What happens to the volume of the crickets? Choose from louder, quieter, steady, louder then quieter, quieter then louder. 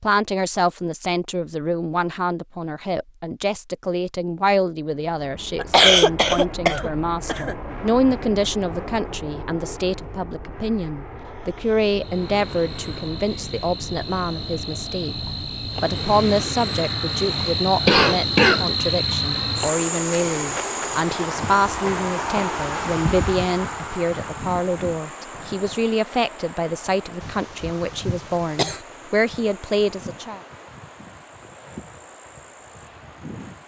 louder then quieter.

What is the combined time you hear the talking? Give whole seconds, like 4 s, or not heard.
30 s.